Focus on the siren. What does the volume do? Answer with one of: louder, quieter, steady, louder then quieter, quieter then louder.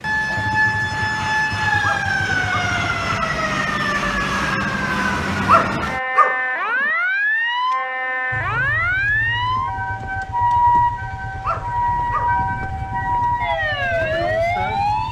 steady.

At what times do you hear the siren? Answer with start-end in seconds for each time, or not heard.
0.0-15.0.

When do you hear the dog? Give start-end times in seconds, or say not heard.
1.8-2.8, 5.5-6.4, 11.4-12.3.